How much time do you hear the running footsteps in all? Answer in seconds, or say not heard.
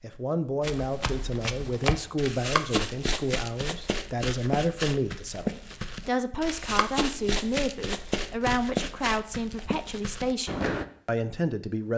10 s.